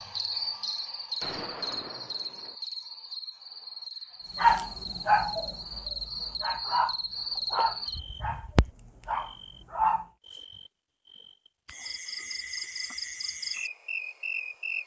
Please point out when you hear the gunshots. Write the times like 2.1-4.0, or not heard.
1.2-2.5.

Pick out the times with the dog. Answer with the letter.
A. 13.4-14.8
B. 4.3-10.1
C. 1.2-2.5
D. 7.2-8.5
B.